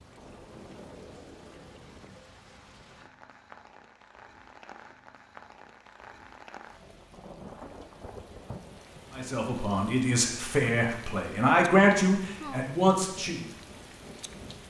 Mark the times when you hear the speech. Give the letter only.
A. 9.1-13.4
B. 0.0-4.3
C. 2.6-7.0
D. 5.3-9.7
A.